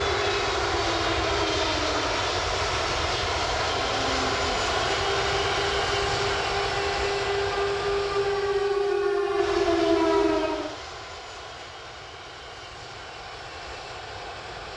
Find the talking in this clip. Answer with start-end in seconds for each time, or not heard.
not heard.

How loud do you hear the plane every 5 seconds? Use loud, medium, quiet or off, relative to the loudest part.
loud, loud, quiet.